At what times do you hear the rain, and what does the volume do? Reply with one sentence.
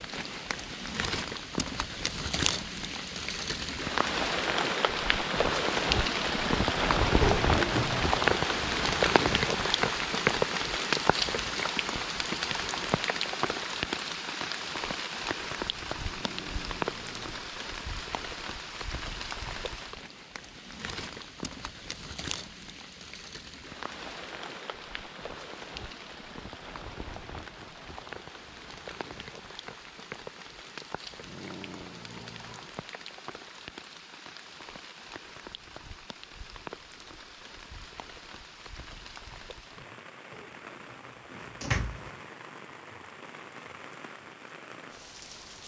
The rain can be heard from 0.0 to 45.6 s, getting quieter.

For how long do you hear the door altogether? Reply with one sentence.
The door can be heard for 3 seconds in total.